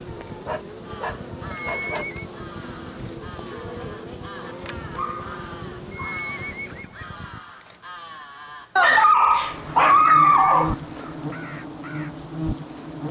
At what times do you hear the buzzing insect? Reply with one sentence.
The buzzing insect can be heard from 0.0 to 7.5 s and from 9.4 to 13.0 s.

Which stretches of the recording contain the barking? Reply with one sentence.
The barking can be heard from 0.1 to 2.2 s, from 4.4 to 6.2 s and from 8.8 to 10.8 s.